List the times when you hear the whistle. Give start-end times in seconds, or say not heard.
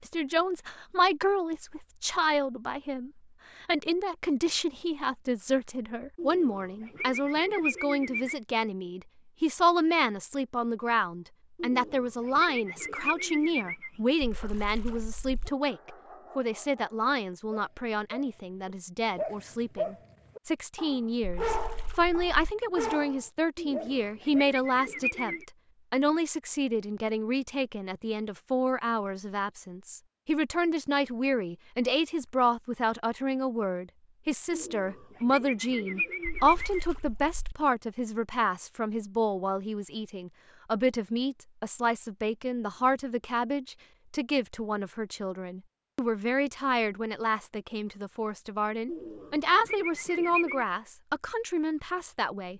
not heard.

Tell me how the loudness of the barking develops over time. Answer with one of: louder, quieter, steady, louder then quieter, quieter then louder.
louder.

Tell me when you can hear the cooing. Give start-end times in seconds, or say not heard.
6.2-8.3, 11.6-13.9, 23.6-25.4, 34.5-36.9, 48.9-50.6.